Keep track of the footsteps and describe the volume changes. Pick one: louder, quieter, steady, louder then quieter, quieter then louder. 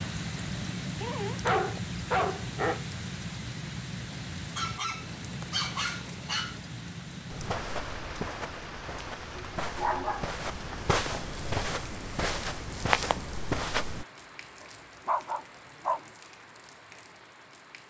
louder.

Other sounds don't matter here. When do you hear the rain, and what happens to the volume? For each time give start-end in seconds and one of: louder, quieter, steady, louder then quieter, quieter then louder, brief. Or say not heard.
0.0-17.8 quieter.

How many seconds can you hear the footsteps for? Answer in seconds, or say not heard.
7 s.